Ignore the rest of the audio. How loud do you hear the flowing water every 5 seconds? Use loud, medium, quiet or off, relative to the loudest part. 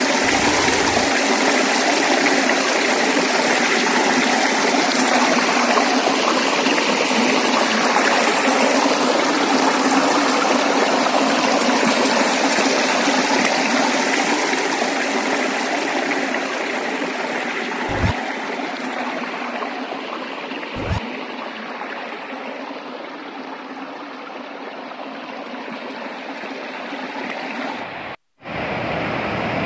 loud, loud, loud, medium, quiet, medium.